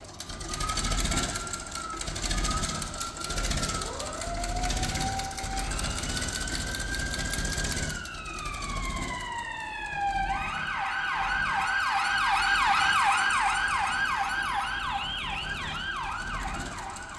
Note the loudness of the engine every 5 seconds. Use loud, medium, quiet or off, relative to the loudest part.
loud, loud, quiet, medium.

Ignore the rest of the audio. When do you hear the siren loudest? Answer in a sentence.
The loudest moment of the siren is at 13 seconds.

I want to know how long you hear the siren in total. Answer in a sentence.
The siren can be heard for 17 seconds in total.